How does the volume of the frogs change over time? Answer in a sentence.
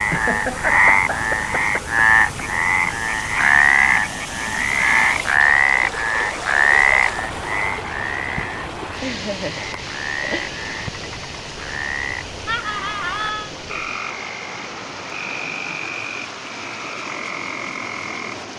The loudness of the frogs goes down.